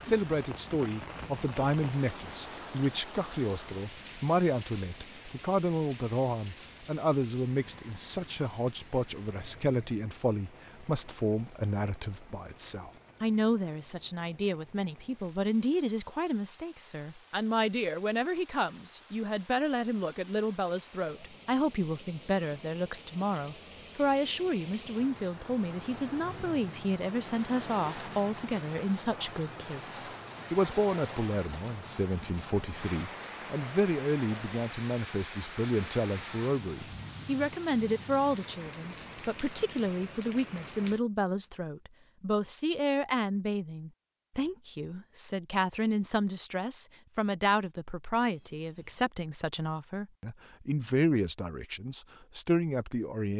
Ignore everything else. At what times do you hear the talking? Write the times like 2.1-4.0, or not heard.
0.0-53.3.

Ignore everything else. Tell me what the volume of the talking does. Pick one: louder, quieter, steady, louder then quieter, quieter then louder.
steady.